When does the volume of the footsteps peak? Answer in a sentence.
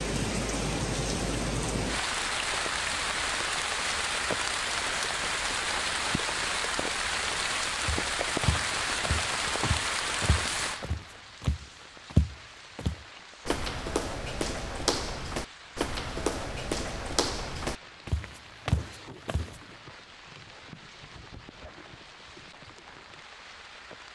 The volume of the footsteps peaks at 12 seconds.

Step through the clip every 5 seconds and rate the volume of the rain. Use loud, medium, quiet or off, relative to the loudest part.
loud, loud, medium, quiet, quiet.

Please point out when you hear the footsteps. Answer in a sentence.
The footsteps can be heard from 7.8 to 19.6 s.